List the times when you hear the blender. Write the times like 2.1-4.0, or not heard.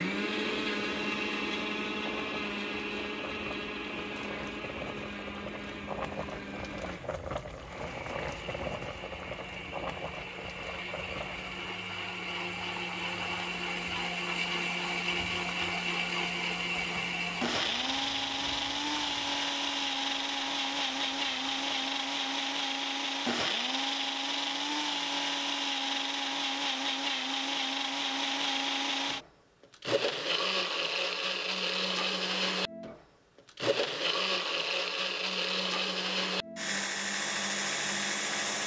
0.0-38.6.